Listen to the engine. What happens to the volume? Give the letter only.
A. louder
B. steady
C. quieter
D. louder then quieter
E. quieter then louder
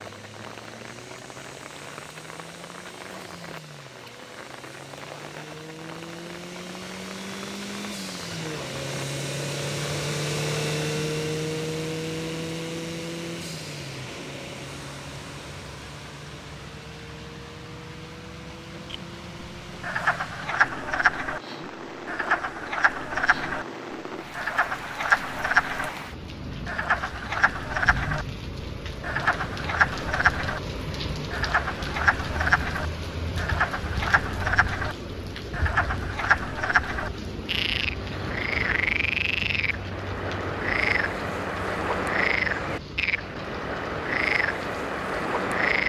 D.